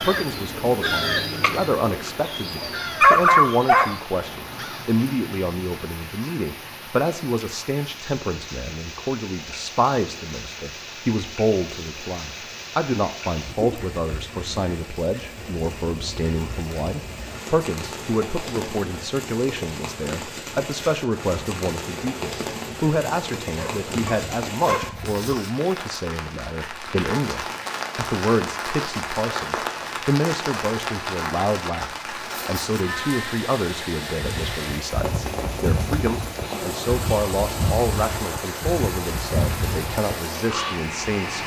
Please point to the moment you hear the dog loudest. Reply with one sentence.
The volume of the dog peaks at 3 seconds.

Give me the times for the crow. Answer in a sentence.
You can hear the crow from 0.0 to 5.0 s and from 34.2 to 40.8 s.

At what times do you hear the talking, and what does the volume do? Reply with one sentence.
The talking can be heard from 0.0 to 41.4 s, at a steady volume.